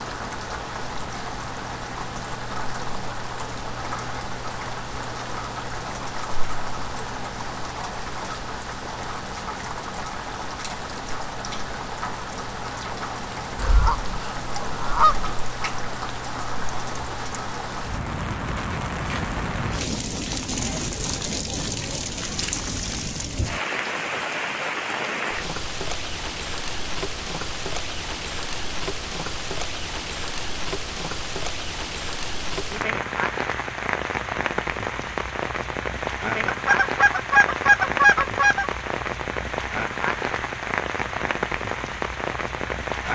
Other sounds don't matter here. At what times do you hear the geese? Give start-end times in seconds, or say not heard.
13.6-15.3, 36.5-38.7.